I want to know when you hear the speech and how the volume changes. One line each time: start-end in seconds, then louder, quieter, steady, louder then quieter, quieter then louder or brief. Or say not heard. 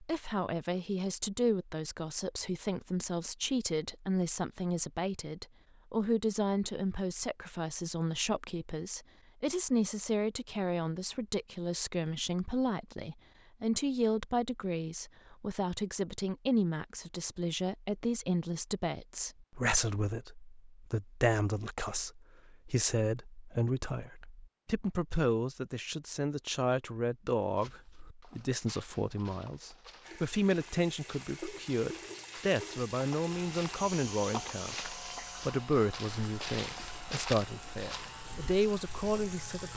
0.0-39.7 steady.